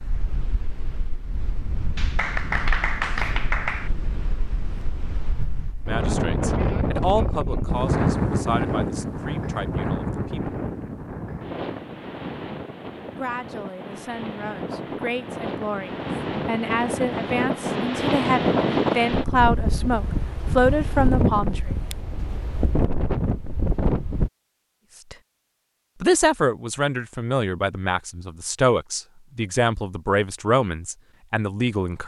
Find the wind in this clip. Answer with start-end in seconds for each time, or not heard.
0.0-24.3.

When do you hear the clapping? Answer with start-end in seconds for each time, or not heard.
1.9-3.9.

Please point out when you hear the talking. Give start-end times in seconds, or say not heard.
5.8-10.6, 13.1-21.7, 26.0-32.0.